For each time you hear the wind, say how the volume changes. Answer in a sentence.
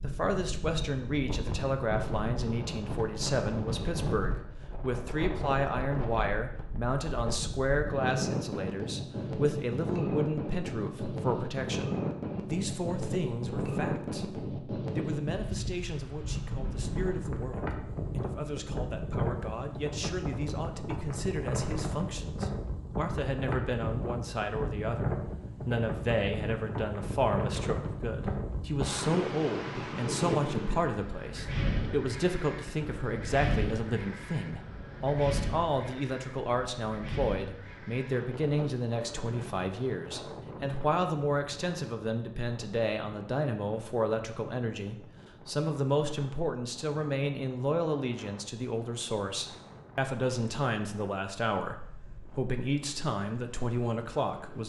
You can hear the wind from 0.0 to 54.6 s, getting quieter.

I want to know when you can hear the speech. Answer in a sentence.
The speech can be heard from 0.0 to 54.6 s.